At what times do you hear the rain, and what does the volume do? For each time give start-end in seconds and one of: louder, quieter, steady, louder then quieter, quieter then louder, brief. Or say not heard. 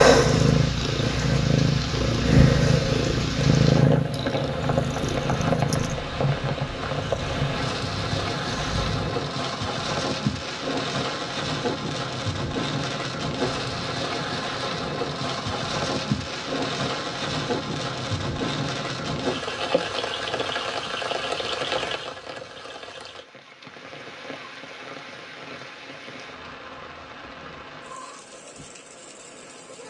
0.1-29.8 quieter.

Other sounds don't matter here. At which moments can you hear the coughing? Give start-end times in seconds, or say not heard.
not heard.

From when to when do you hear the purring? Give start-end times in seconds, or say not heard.
0.0-9.2.